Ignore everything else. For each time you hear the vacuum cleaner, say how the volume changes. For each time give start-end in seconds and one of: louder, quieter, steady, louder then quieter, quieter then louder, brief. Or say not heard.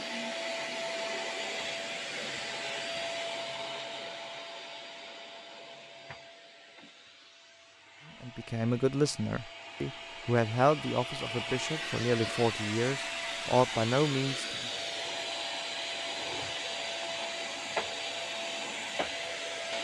0.0-19.7 quieter then louder.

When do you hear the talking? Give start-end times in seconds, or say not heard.
8.2-14.7.